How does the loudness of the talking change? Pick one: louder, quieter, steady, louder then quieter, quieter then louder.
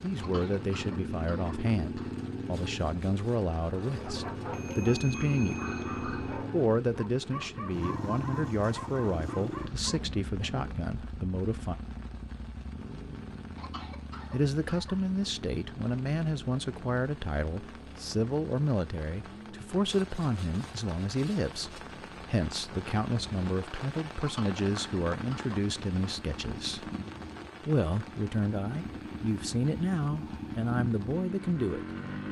steady.